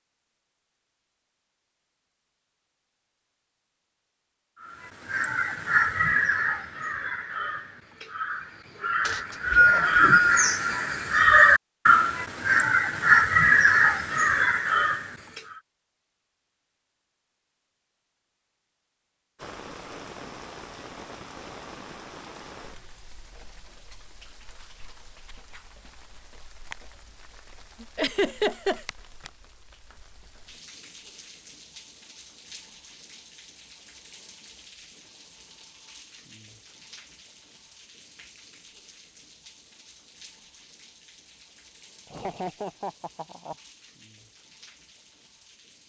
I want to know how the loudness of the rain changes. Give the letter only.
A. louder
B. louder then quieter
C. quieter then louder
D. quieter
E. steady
D.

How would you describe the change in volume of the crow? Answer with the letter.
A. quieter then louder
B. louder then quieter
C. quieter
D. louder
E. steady
A.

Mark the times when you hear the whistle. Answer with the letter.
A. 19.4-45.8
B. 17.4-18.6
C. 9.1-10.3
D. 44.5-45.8
C.